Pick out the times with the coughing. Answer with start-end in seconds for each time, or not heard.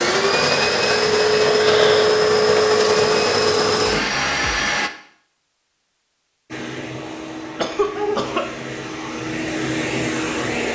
1.4-2.1, 7.5-8.6.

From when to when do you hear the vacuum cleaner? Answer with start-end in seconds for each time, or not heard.
0.0-4.9, 6.5-10.7.